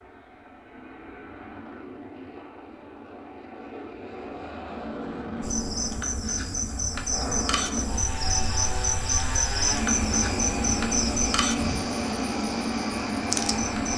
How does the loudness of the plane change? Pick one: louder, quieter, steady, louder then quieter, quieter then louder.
louder.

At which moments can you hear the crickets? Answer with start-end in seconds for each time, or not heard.
5.4-13.9.